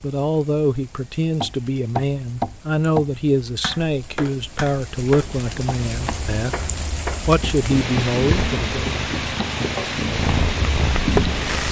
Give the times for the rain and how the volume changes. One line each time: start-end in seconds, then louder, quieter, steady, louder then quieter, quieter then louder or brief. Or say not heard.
0.0-11.6 louder.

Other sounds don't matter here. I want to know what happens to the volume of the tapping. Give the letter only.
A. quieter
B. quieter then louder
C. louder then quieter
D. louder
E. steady
B.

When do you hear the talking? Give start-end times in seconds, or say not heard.
0.0-8.9.